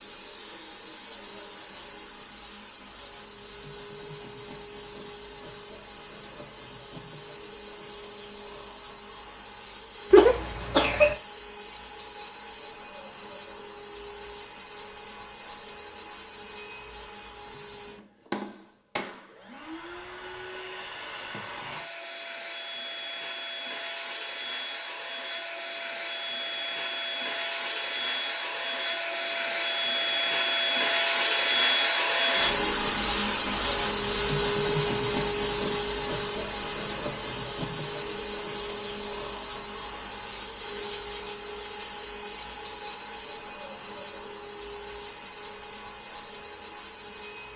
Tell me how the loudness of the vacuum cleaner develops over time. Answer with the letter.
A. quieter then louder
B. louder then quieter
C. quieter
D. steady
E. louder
B.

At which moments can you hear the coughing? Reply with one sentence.
The coughing can be heard from 10.1 to 11.2 s.